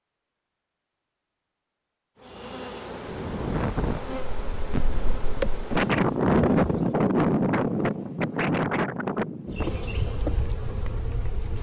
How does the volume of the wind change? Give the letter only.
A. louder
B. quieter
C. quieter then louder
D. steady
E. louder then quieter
E.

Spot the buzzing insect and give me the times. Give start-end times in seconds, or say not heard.
2.1-7.0, 9.4-11.5.